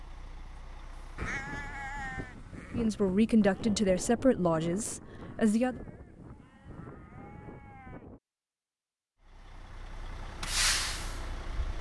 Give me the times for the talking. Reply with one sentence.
The talking can be heard from 2.7 to 5.8 s.